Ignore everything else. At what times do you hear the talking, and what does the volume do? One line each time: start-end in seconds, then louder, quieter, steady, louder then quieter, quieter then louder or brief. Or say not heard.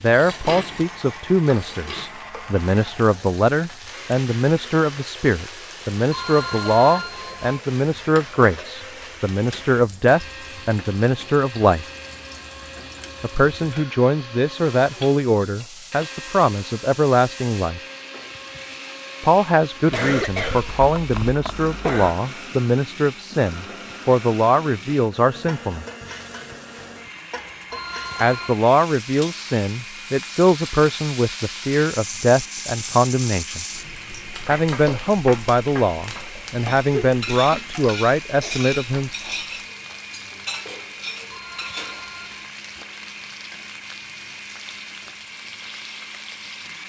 0.0-11.8 steady
13.2-17.8 steady
19.2-25.9 steady
28.2-33.6 steady
34.5-39.1 steady.